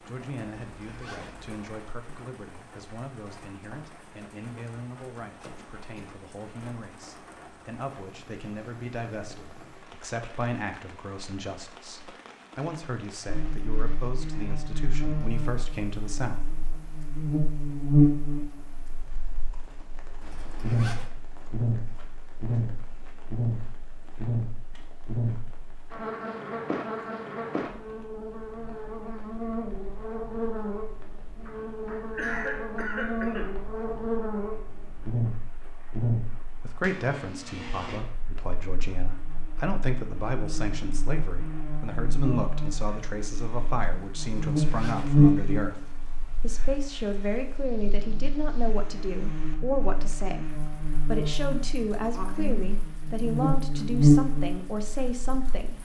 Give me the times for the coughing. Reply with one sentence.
The coughing can be heard from 5.4 to 6.2 s, from 31.4 to 33.6 s and from 52.1 to 52.8 s.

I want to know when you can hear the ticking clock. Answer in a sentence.
The ticking clock can't be heard in this clip.